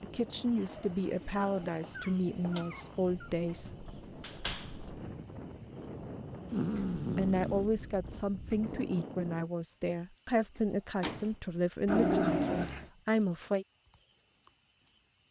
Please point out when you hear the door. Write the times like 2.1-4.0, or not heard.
3.9-4.8, 10.6-11.3.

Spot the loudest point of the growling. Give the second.
12 s.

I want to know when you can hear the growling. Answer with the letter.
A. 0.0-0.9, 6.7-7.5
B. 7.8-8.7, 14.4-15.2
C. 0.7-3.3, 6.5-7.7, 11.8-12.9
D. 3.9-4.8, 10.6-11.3
C.